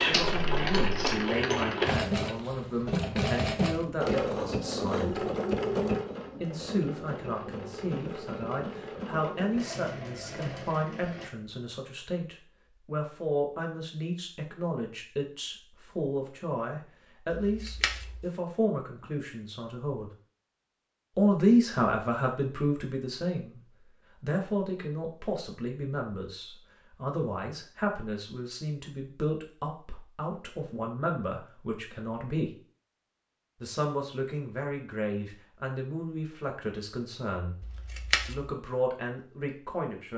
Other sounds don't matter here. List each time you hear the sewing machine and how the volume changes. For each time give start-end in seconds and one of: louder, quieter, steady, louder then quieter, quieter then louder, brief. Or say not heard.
0.0-11.3 quieter.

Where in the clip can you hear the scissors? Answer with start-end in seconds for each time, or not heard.
0.1-1.1, 17.4-18.2, 37.6-38.4.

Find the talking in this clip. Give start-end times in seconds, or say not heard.
0.1-5.3, 6.4-20.1, 21.1-32.5, 33.6-37.5, 38.2-40.1.